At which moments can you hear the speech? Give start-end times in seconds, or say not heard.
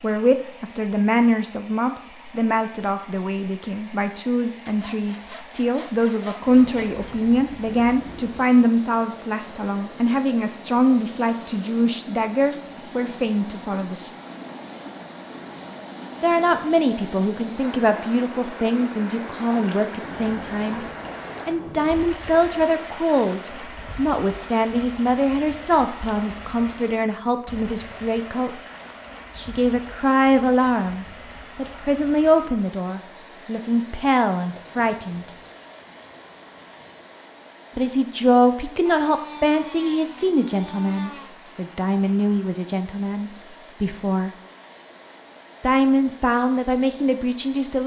0.0-14.1, 16.2-20.9, 21.4-28.6, 29.4-35.4, 37.8-44.3, 45.6-47.8.